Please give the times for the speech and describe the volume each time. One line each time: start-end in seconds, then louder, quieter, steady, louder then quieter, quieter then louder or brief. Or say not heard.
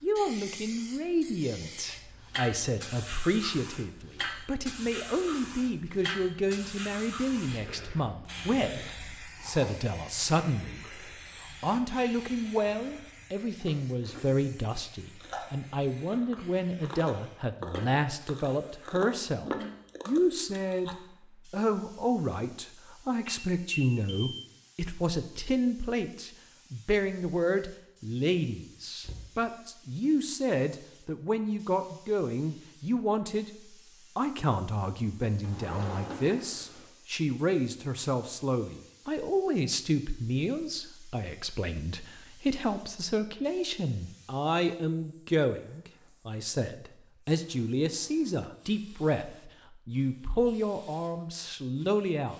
0.0-33.5 steady
34.1-52.3 steady.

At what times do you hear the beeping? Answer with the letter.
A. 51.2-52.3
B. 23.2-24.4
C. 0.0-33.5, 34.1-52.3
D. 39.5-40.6
B.